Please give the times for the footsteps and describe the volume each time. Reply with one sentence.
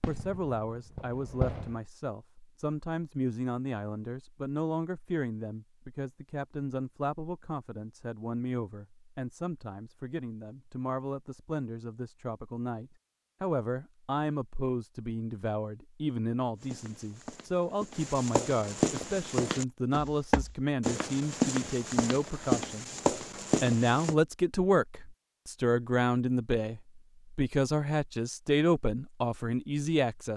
You can hear the footsteps from 16.6 to 24.1 s, getting louder.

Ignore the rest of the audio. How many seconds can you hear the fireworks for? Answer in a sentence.
The fireworks can be heard for 2 seconds in total.